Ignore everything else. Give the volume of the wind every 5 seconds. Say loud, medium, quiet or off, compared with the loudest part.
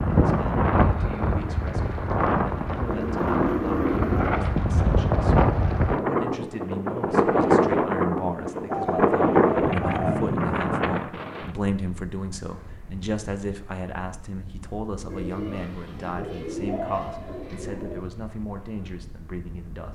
loud, loud, medium, quiet.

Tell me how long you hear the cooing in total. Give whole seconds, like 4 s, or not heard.
6 s.